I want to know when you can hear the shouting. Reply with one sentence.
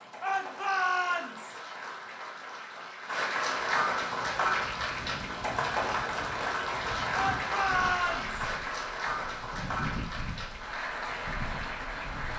The shouting can be heard from 0.2 to 1.6 s and from 7.1 to 8.4 s.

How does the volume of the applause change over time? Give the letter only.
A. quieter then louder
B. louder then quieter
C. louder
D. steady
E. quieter
B.